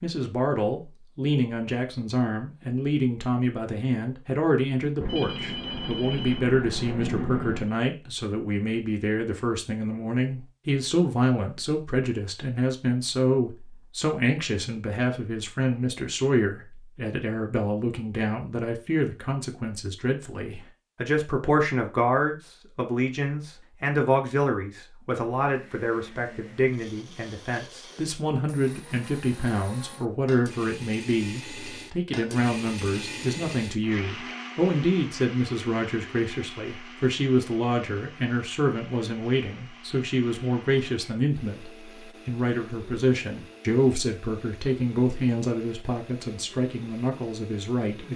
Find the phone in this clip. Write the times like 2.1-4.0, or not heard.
5.0-7.7.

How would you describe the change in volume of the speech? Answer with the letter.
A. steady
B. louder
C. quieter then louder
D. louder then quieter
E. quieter
A.